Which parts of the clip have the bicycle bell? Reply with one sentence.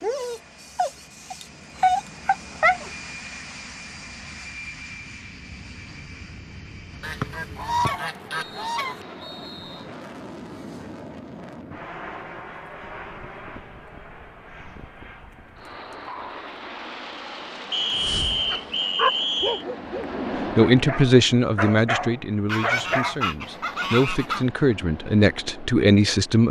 You can't hear the bicycle bell here.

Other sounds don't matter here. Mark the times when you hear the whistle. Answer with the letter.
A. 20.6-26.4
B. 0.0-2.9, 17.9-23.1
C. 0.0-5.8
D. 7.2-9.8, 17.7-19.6
D.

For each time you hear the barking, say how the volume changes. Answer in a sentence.
The barking can be heard briefly from 0.0 to 2.9 s; and from 17.9 to 23.1 s, getting quieter then louder.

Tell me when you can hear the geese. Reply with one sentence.
You can hear the geese from 7.0 to 9.1 s and from 22.4 to 24.4 s.